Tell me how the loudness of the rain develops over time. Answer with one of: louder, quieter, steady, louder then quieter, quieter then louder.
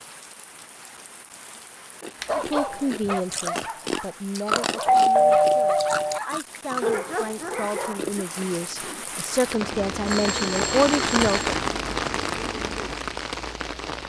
louder.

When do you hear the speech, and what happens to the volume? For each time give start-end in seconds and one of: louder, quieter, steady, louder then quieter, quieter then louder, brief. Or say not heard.
2.4-11.6 quieter then louder.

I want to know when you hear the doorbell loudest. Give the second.
5 s.